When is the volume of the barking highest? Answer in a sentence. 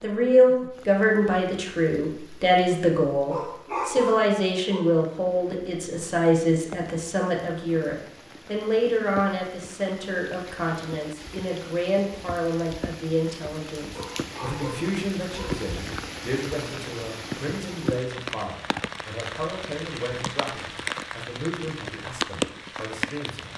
The loudest moment of the barking is at 4 seconds.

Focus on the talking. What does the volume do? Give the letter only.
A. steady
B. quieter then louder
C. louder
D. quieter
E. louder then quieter
D.